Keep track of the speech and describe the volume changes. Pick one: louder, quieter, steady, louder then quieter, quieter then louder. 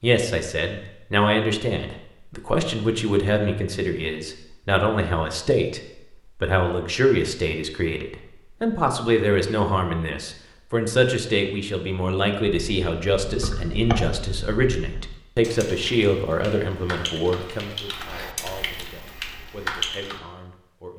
quieter.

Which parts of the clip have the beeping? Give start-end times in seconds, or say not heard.
not heard.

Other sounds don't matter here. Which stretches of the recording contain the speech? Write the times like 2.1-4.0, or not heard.
0.0-5.8, 6.4-20.9.